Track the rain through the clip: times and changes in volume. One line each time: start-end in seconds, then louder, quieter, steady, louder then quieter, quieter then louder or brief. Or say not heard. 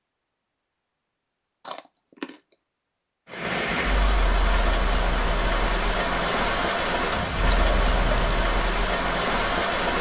3.2-9.9 steady.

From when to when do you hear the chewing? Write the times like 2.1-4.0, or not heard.
1.6-2.5, 7.1-8.3.